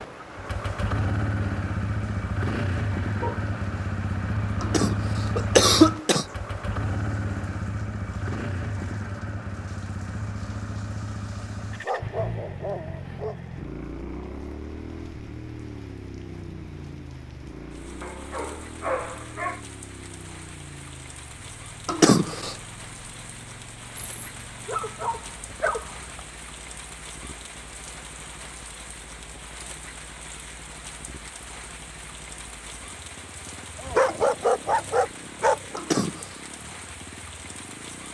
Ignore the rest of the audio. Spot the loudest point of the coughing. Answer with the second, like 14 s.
6 s.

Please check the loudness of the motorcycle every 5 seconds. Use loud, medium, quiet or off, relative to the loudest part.
loud, loud, medium, medium, quiet, quiet, quiet, quiet.